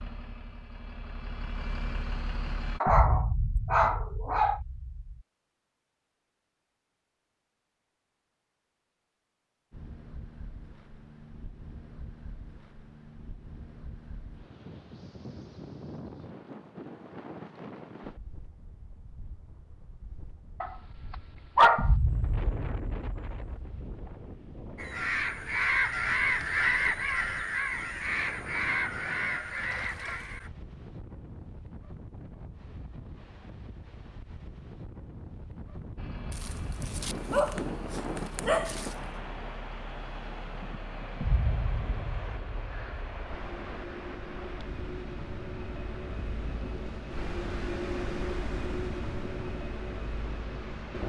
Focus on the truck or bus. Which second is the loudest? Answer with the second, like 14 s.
48 s.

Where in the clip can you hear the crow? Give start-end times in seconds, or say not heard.
24.8-30.5.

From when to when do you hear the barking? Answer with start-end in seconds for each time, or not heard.
2.8-4.6, 20.6-21.9, 36.3-39.0.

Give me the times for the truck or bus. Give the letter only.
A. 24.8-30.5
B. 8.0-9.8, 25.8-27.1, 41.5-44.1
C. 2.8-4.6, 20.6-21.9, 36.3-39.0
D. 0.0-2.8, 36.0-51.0
D.